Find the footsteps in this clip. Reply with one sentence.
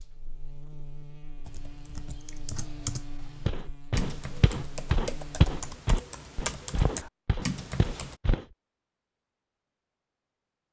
You can hear the footsteps from 3.5 to 8.4 s.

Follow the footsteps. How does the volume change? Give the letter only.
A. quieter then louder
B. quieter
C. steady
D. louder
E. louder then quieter
E.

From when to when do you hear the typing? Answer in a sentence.
You can hear the typing from 1.4 to 8.2 s.